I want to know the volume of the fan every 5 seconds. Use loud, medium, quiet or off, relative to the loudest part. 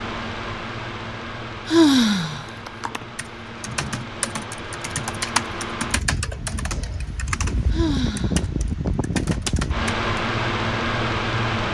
medium, medium, loud.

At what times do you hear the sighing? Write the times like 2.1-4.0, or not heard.
1.6-2.9, 7.7-8.9.